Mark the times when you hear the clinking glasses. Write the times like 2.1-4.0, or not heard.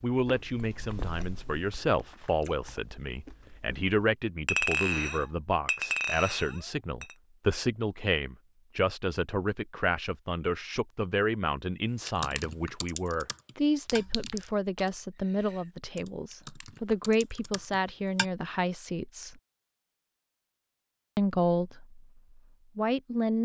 4.5-7.2, 13.8-14.6.